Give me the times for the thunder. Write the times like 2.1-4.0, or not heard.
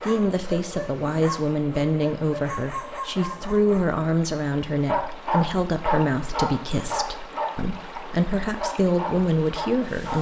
not heard.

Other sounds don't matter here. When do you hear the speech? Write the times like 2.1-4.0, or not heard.
0.0-10.1.